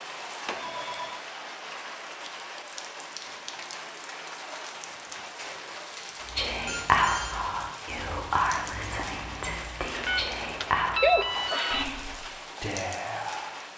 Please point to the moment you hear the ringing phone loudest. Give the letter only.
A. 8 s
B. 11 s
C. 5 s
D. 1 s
B.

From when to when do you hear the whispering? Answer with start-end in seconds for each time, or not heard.
6.3-13.6.